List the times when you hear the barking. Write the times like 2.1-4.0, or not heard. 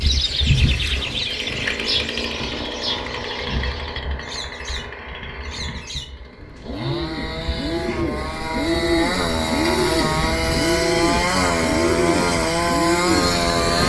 not heard.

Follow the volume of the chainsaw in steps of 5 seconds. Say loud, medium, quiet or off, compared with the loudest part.
medium, medium, loud.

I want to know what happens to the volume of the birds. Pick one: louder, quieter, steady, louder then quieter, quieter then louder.
quieter then louder.